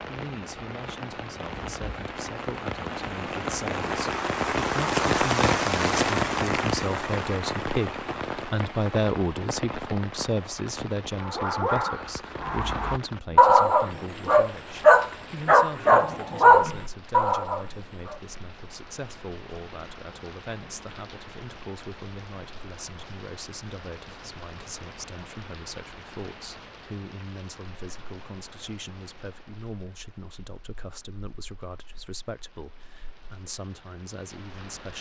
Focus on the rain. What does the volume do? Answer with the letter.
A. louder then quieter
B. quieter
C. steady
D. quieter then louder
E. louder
B.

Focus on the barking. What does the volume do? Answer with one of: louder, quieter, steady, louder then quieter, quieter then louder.
louder.